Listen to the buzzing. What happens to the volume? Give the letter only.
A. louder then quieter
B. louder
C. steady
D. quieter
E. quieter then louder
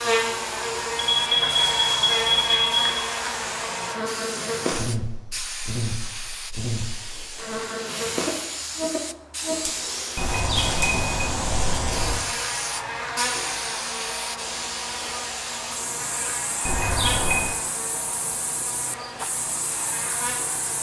D.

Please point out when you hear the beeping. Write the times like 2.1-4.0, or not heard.
0.9-3.0, 10.2-12.2, 16.6-17.5.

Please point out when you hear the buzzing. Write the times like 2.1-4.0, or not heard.
0.0-20.7.